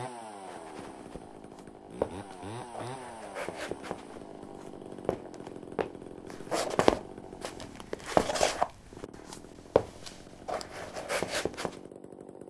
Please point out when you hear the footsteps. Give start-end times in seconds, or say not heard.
0.5-11.8.